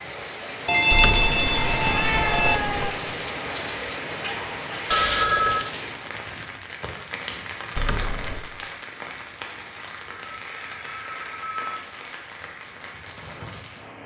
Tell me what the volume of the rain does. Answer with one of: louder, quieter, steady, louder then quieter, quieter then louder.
quieter.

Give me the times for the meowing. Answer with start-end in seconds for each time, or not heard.
0.9-2.9, 7.8-8.4.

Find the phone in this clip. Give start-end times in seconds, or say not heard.
0.7-2.6, 4.9-5.7, 10.1-11.8.